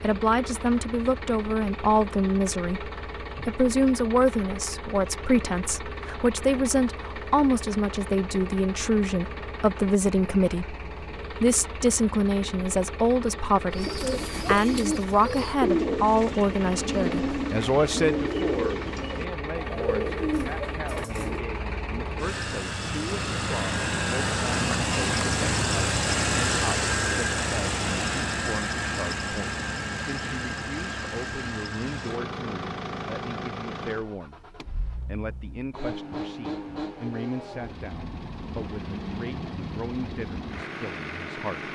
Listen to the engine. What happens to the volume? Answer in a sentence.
The loudness of the engine goes up, then down.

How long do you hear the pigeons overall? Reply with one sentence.
The pigeons can be heard for 8 seconds in total.